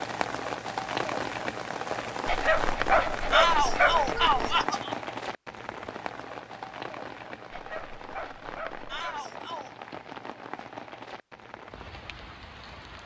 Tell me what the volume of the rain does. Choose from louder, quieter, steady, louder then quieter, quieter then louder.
quieter.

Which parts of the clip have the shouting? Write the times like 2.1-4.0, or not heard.
3.3-5.0, 8.8-9.7.